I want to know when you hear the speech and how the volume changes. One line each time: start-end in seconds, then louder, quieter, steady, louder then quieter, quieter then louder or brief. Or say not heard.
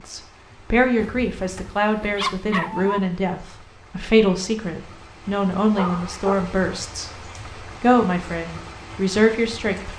0.1-7.1 steady
7.8-9.9 brief.